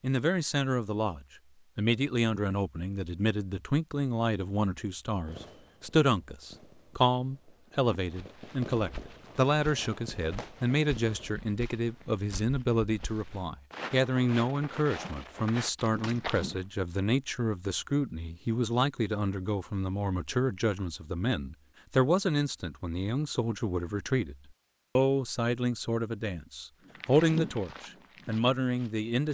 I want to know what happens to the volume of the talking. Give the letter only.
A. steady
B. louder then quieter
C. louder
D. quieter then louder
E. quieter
A.